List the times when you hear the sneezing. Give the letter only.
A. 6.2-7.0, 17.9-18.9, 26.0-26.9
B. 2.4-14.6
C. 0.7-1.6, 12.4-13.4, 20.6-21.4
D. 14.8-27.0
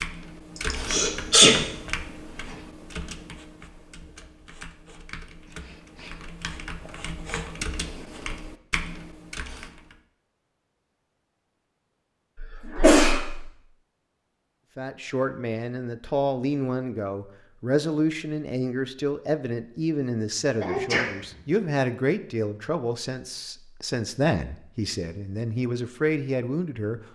C.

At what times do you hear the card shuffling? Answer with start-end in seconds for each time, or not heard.
not heard.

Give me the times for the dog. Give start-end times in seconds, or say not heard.
not heard.